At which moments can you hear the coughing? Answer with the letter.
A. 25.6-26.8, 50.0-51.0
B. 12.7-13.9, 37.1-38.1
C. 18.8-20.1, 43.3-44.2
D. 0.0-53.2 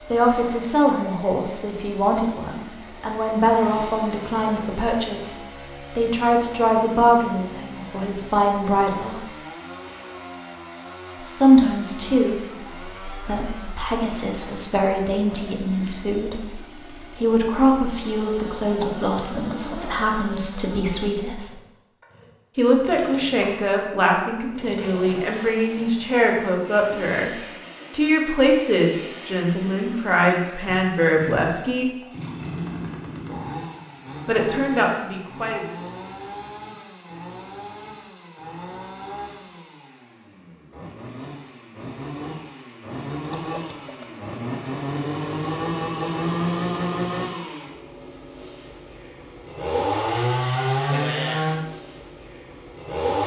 C.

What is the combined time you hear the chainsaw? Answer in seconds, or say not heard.
53 s.